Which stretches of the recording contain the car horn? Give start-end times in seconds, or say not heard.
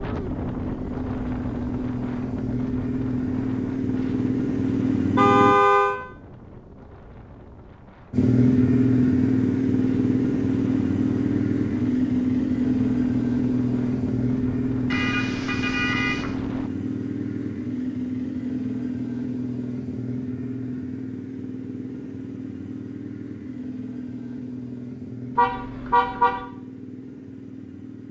5.2-6.0, 14.9-16.4, 25.4-26.4.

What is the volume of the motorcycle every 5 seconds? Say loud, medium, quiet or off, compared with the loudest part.
medium, loud, loud, medium, quiet, quiet.